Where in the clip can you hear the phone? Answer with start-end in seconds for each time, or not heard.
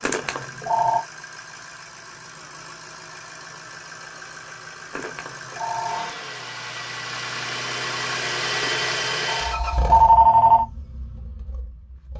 0.0-1.0, 4.9-6.1, 8.6-10.7.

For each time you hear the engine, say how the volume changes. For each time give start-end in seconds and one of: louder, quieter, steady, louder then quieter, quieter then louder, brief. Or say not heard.
0.0-12.1 louder then quieter.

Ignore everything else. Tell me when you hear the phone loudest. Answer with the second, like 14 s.
10 s.